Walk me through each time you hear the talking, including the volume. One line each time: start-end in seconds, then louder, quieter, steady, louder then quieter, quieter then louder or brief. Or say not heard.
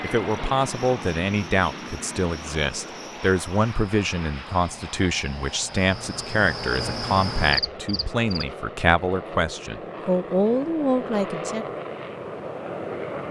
0.0-11.7 steady.